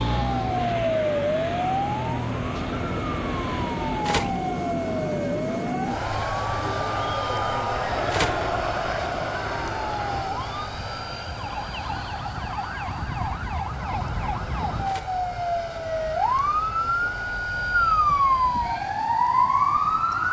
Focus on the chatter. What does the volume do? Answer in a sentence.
The volume of the chatter goes up.